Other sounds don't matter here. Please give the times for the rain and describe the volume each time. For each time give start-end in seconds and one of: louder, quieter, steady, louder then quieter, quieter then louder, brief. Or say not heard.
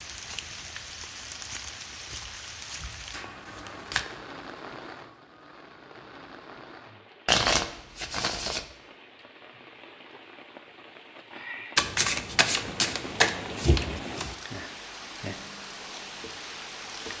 0.0-17.1 quieter then louder.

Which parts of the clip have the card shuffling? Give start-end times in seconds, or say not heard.
3.1-4.0, 7.2-8.7, 11.8-14.3.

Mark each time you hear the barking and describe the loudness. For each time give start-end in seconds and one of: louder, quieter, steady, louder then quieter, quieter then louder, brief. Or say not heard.
not heard.